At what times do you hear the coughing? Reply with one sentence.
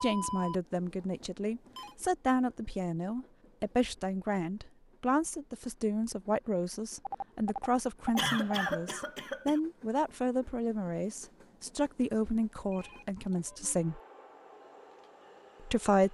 You can hear the coughing from 8.2 to 9.6 s.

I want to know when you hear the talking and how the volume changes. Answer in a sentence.
The talking can be heard from 0.0 to 14.0 s, at a steady volume; and briefly from 15.6 to 16.0 s.